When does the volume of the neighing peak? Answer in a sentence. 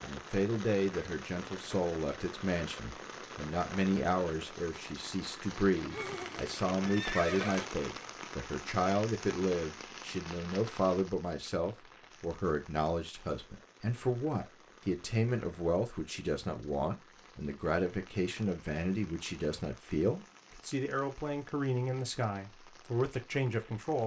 The volume of the neighing peaks at 7 seconds.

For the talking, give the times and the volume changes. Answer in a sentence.
The talking can be heard from 0.0 to 24.0 s, at a steady volume.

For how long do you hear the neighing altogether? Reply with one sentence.
You can hear the neighing for 2 seconds altogether.